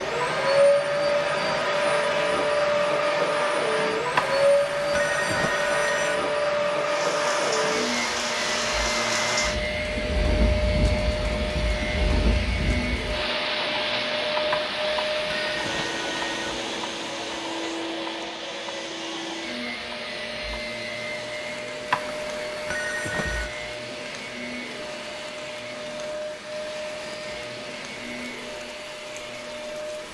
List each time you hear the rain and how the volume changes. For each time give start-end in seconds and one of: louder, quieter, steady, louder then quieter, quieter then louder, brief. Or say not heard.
6.8-30.0 quieter.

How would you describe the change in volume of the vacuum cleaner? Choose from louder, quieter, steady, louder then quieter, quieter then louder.
quieter.